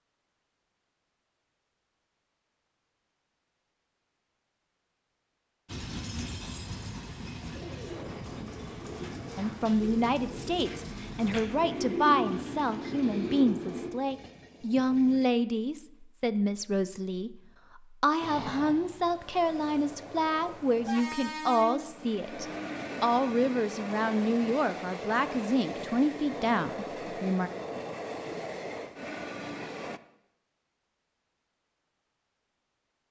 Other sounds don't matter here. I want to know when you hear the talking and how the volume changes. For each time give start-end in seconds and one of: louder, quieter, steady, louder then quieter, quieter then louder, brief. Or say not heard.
9.3-27.5 steady.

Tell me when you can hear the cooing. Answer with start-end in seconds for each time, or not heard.
7.4-13.9.